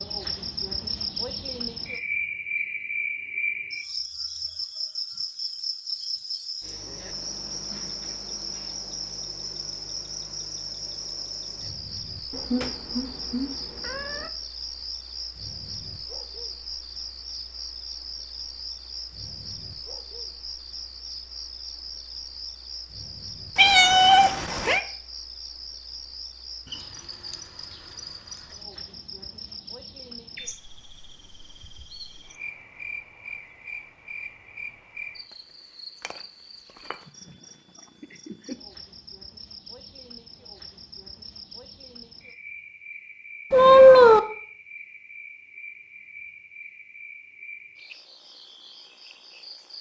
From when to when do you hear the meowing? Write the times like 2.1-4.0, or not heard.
12.3-14.3, 23.6-24.8, 43.5-44.2.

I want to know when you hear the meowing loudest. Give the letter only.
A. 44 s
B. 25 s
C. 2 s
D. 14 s
A.